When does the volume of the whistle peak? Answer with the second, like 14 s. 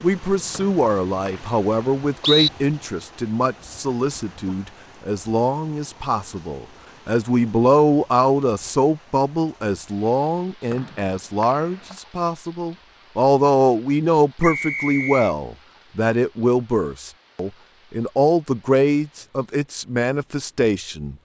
2 s.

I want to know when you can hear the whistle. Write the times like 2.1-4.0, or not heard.
0.5-2.5, 10.7-11.9, 14.4-15.3.